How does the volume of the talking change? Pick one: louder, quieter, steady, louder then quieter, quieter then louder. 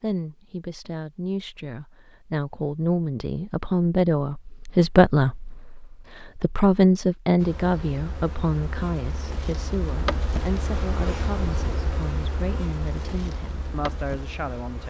louder then quieter.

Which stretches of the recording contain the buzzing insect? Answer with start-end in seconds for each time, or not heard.
7.3-14.8.